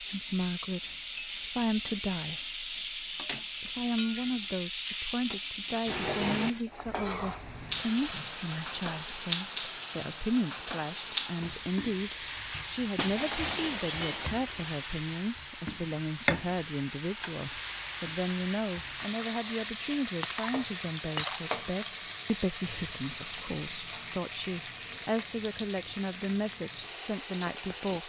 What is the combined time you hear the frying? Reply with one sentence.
The frying can be heard for 28 seconds in total.